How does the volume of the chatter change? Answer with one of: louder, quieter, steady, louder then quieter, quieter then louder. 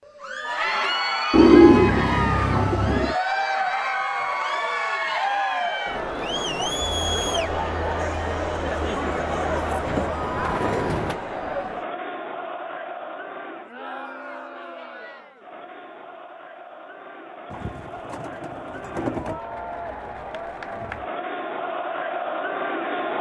quieter then louder.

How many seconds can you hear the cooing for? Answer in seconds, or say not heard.
5 s.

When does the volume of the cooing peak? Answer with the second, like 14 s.
2 s.